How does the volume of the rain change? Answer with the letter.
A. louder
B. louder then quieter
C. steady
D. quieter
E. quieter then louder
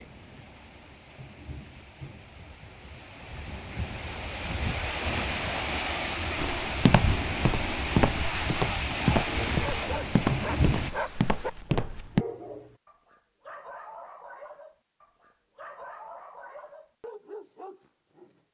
A.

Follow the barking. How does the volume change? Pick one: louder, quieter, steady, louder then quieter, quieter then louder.
quieter.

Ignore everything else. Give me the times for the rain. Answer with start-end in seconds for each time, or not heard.
0.0-10.9.